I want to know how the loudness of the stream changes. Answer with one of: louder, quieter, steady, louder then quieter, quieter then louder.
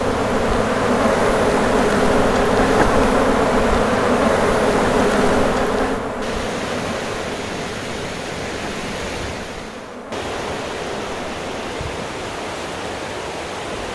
steady.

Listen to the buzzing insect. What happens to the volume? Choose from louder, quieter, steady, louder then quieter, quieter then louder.
quieter.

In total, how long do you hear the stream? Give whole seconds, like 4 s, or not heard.
14 s.